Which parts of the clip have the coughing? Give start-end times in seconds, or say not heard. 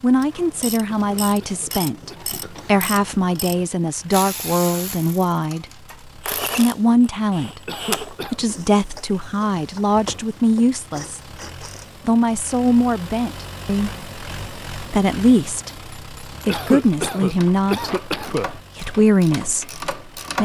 0.9-2.4, 7.7-8.4, 16.4-18.5.